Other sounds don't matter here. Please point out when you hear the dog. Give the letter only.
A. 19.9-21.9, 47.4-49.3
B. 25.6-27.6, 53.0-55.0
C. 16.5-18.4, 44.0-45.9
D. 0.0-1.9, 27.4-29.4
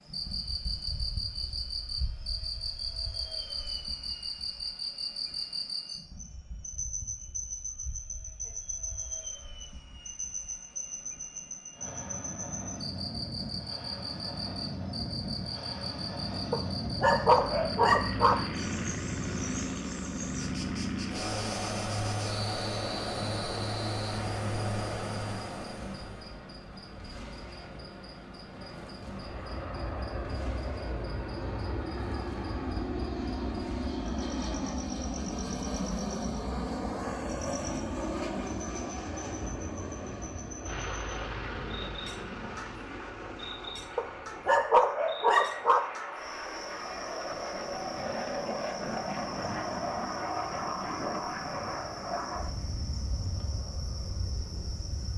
C.